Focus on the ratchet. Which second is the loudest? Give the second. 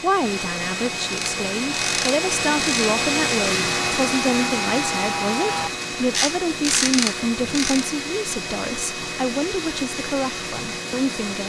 7 s.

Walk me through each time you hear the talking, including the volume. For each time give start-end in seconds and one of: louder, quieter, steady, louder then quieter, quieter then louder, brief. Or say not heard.
0.0-11.4 steady.